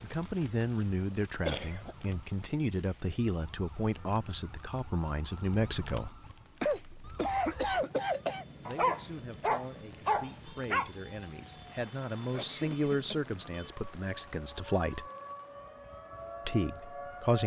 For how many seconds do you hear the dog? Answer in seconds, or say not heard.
2 s.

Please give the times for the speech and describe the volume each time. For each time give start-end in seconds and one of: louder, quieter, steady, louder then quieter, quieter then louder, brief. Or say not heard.
0.0-6.1 quieter then louder
8.6-15.1 louder then quieter
16.4-17.4 brief.